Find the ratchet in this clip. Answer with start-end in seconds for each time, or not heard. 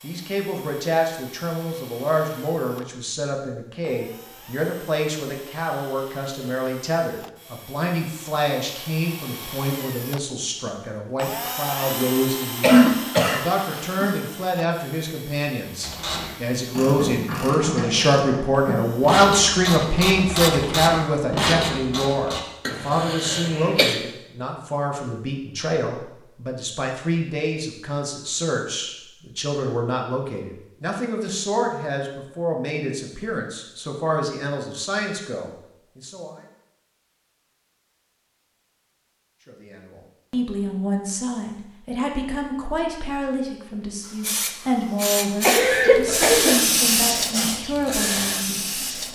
15.8-22.4.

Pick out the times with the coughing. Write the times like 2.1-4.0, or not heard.
12.6-14.2, 22.6-23.9, 45.4-46.6.